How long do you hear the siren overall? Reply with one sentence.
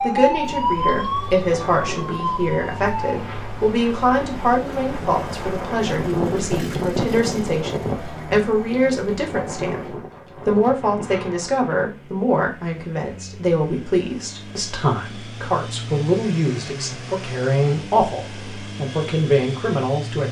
You can hear the siren for 3 seconds altogether.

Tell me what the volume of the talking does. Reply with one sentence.
The volume of the talking stays about the same.